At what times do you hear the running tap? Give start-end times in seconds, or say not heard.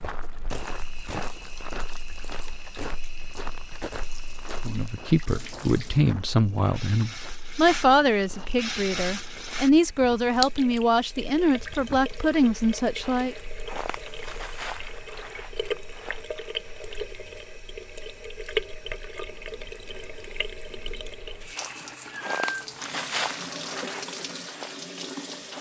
0.1-25.5.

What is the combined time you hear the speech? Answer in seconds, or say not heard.
9 s.